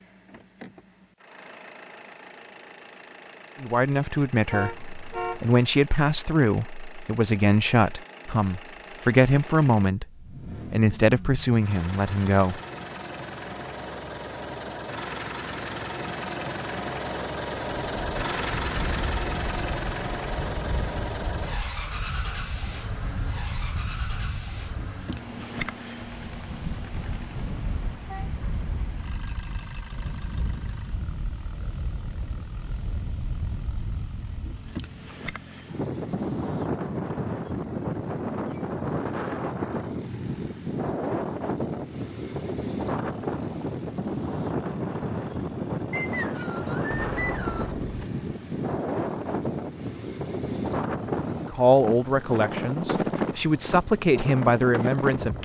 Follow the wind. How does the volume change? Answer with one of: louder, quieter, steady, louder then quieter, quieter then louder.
louder.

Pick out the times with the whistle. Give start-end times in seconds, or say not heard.
45.9-47.8.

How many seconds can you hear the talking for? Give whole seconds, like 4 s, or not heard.
12 s.